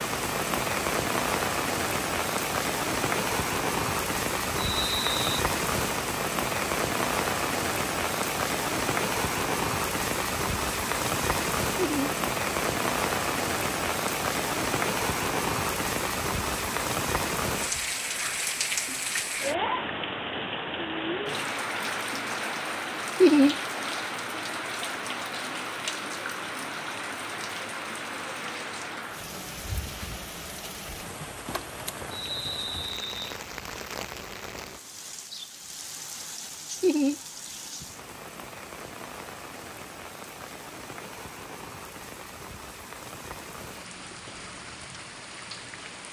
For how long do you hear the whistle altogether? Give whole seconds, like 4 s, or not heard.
2 s.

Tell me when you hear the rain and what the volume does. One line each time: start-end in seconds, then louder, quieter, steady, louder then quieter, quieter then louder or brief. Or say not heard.
0.0-46.0 quieter.